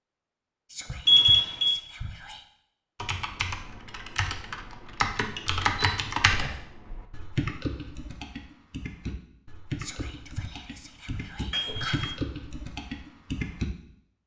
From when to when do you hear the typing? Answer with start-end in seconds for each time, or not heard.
3.0-13.7.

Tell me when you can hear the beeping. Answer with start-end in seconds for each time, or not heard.
1.1-1.8, 5.3-6.2, 11.5-12.2.